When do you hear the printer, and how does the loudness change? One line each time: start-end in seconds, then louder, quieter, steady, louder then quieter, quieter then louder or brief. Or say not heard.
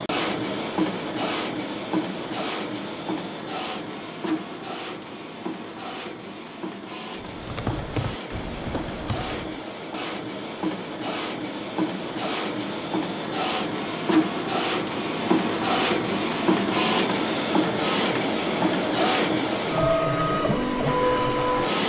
0.0-21.8 quieter then louder.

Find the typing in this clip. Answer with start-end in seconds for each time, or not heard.
7.2-9.6.